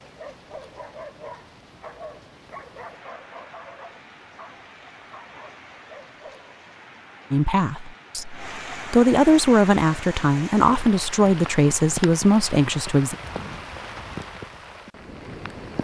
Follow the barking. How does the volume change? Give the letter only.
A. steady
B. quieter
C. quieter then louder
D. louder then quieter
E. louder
B.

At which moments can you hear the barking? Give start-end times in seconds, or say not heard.
0.0-6.5.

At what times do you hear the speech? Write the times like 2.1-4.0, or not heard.
7.3-13.2.